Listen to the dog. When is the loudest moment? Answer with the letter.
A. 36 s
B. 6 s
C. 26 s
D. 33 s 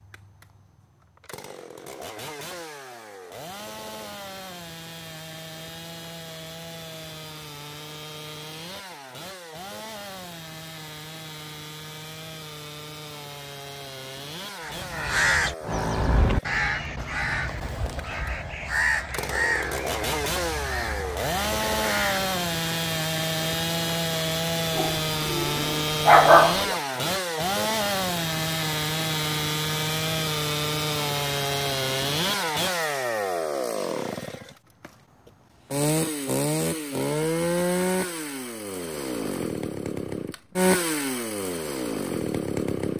C.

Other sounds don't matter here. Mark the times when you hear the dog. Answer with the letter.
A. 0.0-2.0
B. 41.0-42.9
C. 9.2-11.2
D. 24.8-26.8
D.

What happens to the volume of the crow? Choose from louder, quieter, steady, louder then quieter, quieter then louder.
quieter.